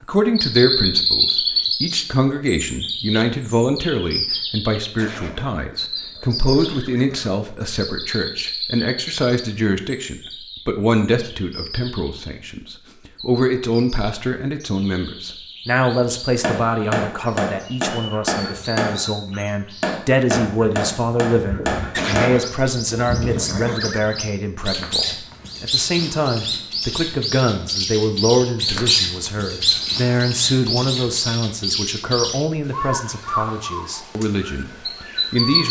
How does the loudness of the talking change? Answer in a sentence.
The loudness of the talking stays about the same.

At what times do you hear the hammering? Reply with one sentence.
You can hear the hammering from 16.4 to 23.9 s.